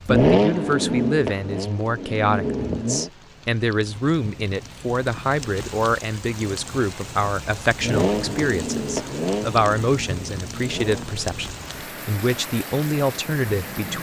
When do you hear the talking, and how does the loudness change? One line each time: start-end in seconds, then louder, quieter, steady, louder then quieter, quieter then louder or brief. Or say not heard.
0.1-13.9 steady.